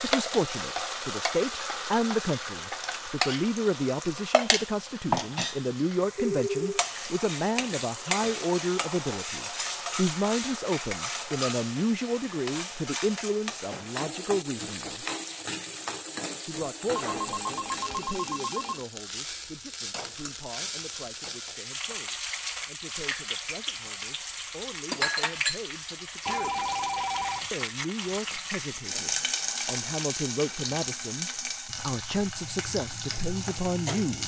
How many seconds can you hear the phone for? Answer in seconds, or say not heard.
4 s.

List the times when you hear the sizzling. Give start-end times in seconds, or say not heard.
0.0-34.2.